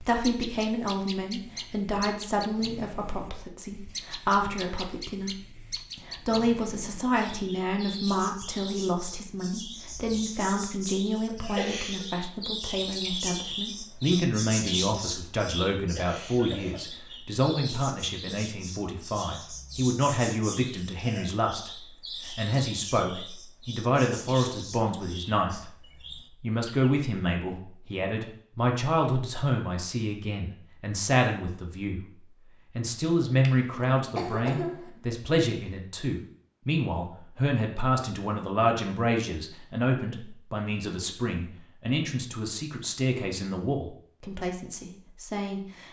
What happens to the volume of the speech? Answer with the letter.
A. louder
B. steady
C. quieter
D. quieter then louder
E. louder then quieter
B.